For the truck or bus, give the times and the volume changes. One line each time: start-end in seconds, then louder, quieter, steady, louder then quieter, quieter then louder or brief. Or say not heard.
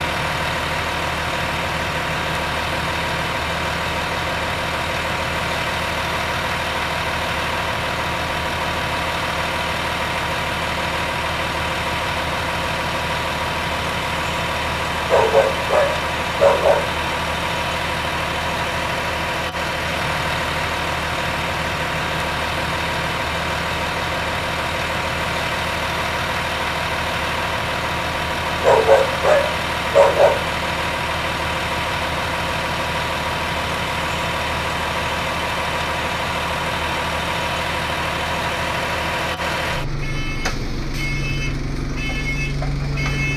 0.0-43.3 steady.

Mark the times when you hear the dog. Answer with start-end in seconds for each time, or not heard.
15.1-16.9, 28.6-30.5.